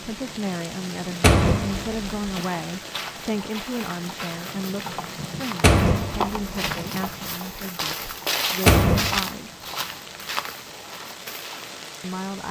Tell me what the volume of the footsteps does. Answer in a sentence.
The volume of the footsteps goes up, then down.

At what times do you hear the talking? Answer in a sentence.
The talking can be heard from 0.0 to 9.7 s and from 12.0 to 12.4 s.